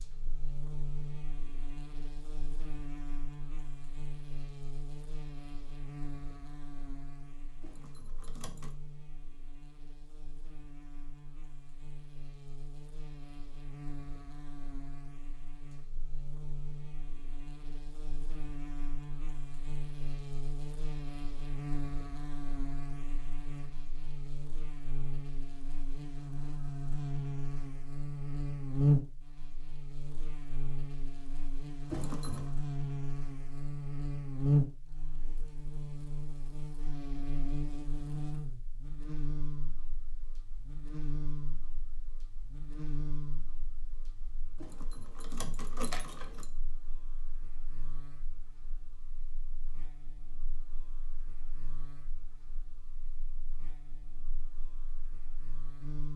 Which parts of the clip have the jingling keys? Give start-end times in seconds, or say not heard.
7.6-8.8, 31.9-32.5, 44.5-46.5.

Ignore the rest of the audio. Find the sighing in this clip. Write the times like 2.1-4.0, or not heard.
not heard.